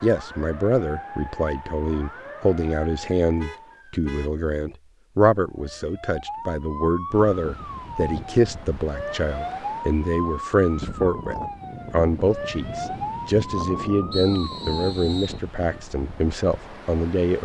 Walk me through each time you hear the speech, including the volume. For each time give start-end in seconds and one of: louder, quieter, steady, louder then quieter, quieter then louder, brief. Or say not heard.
0.0-17.4 steady.